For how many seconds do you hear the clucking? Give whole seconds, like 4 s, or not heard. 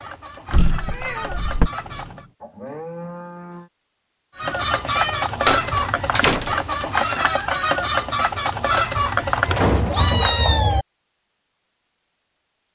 8 s.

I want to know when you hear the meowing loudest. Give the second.
10 s.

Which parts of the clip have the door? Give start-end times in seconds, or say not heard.
0.5-1.7, 5.5-6.5, 9.6-10.2.